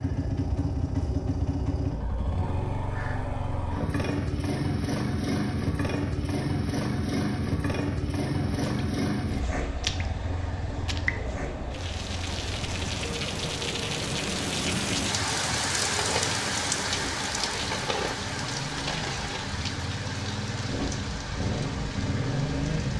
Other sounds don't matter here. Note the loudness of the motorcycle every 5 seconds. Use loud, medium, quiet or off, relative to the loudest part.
loud, loud, medium, medium, loud.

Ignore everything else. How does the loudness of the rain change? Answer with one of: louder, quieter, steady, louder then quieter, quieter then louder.
louder then quieter.